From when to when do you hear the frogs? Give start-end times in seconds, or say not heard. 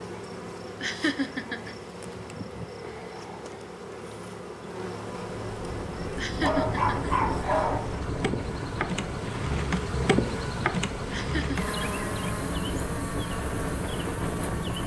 not heard.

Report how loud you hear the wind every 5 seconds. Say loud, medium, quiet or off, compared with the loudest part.
off, loud, loud.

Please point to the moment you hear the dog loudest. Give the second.
7 s.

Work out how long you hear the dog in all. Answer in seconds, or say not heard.
2 s.